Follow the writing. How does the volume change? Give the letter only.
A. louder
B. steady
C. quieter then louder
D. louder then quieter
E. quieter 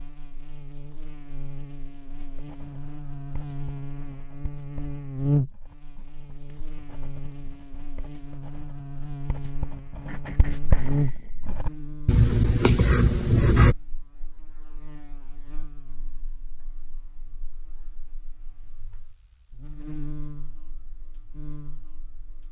A.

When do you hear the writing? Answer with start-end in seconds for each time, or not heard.
2.1-13.8.